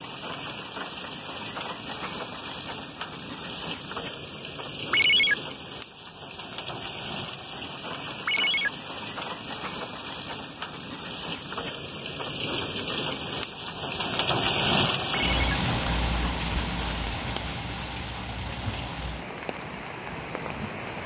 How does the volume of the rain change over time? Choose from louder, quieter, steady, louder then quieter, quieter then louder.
louder then quieter.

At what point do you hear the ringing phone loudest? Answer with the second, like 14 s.
5 s.